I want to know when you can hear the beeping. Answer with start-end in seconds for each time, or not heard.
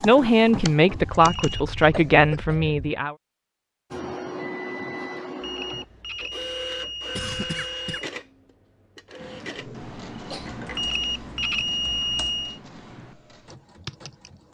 1.1-1.7, 5.4-8.1, 10.8-12.6.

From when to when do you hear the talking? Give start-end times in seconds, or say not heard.
0.0-3.1.